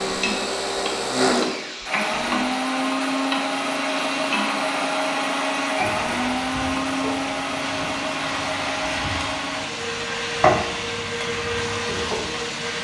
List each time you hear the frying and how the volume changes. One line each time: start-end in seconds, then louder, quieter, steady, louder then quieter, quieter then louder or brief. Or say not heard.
0.0-12.7 louder.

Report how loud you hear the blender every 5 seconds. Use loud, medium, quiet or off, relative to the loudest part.
loud, loud, medium.